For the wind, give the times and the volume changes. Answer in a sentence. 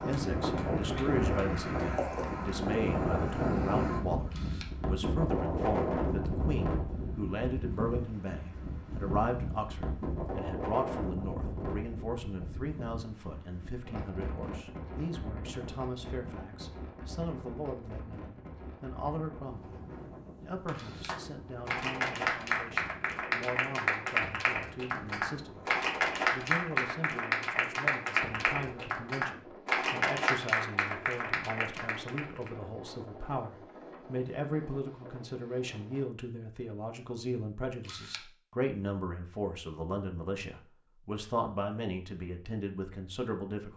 You can hear the wind from 0.0 to 36.1 s, getting quieter.